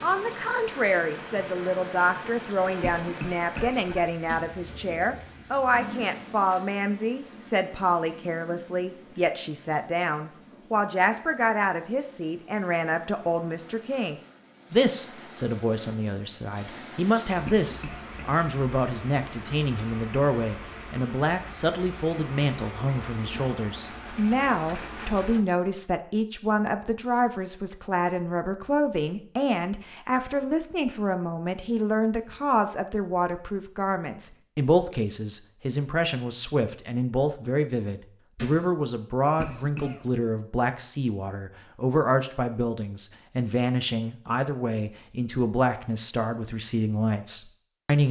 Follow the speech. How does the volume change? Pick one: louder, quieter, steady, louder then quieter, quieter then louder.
steady.